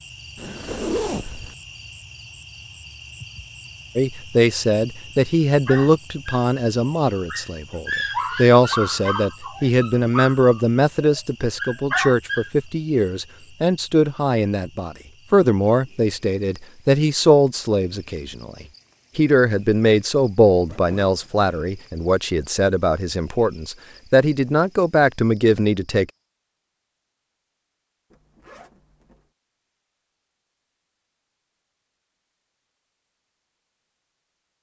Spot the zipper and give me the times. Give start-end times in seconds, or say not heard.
0.3-1.6, 20.5-21.4, 28.1-29.2.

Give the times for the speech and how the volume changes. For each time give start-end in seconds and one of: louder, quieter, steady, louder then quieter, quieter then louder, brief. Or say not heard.
4.0-26.1 steady.